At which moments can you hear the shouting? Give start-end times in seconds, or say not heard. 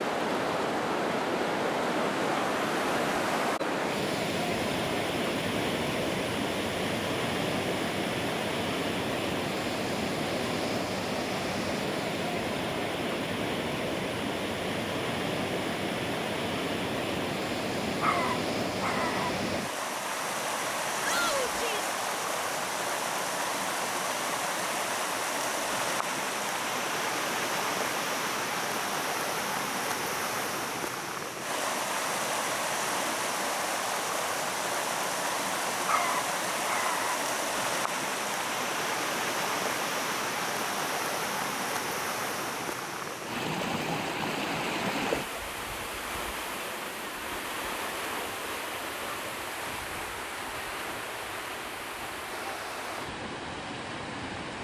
21.0-21.9.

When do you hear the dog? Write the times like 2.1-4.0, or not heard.
18.0-19.3, 35.9-37.1.